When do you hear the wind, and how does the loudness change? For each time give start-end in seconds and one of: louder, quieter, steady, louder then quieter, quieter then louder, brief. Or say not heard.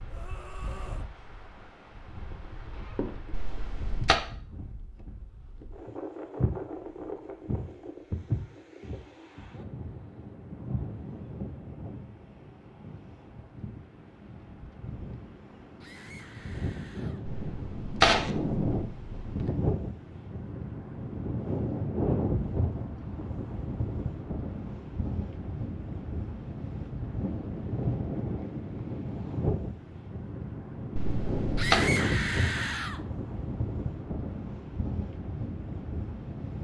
0.0-36.5 louder.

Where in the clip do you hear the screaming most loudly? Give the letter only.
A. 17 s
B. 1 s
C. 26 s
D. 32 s
D.